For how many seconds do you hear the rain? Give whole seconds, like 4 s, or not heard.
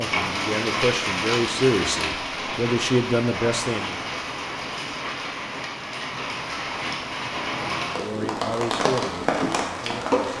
10 s.